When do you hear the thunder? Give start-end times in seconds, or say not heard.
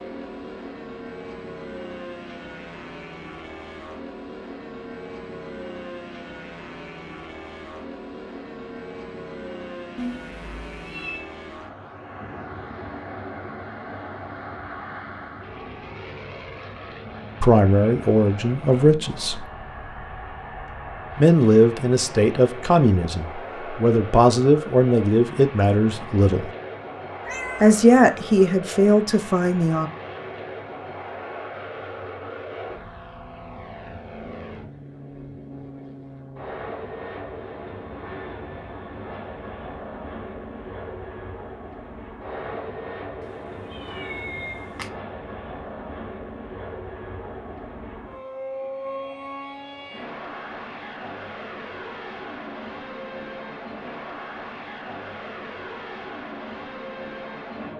not heard.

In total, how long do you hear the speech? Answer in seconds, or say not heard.
10 s.